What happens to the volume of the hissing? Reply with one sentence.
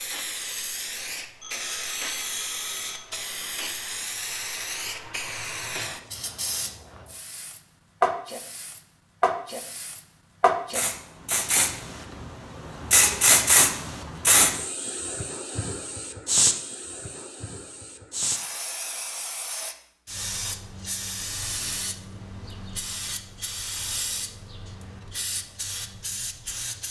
The loudness of the hissing goes up, then down.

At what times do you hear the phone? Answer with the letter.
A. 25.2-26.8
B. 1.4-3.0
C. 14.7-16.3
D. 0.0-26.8
B.